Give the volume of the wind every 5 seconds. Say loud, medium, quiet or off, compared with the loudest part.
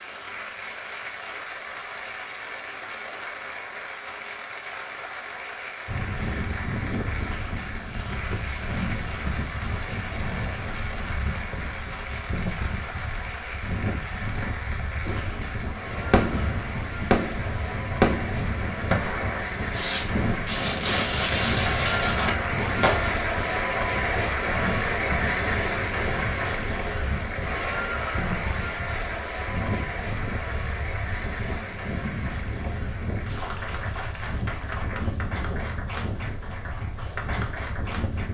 off, loud, loud, loud, loud, loud, loud, loud.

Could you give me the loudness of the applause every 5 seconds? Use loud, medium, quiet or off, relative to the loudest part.
medium, medium, medium, medium, loud, loud, medium, medium.